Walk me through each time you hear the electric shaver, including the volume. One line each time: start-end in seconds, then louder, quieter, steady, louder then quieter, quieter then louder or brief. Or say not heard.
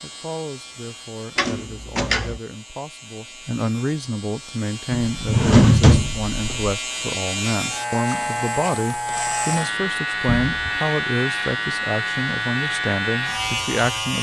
0.0-14.1 louder.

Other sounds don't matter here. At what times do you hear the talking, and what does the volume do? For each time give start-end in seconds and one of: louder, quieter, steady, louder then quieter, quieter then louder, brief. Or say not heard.
0.0-14.1 louder.